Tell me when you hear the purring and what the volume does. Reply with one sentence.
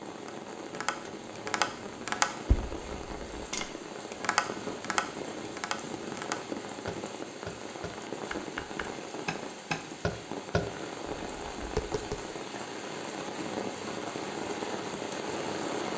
You can't hear the purring here.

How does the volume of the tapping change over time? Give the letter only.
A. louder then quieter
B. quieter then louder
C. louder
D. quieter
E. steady
B.